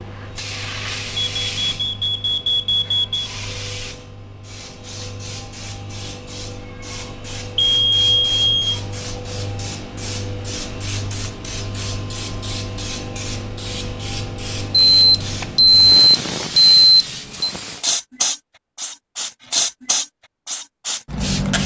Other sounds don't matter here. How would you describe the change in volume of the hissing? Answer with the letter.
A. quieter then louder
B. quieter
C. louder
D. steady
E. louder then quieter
C.